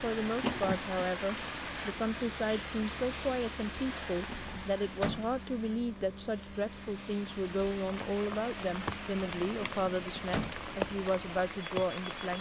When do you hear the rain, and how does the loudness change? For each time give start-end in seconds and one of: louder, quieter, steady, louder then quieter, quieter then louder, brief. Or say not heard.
0.0-12.3 quieter then louder.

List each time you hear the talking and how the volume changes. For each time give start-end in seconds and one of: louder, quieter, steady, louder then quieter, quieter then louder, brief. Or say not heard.
0.0-12.3 steady.